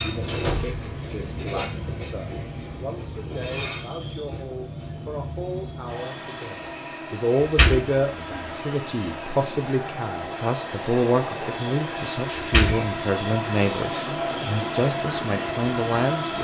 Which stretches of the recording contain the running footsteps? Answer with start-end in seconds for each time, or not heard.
not heard.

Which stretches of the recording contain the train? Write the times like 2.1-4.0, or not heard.
0.0-16.4.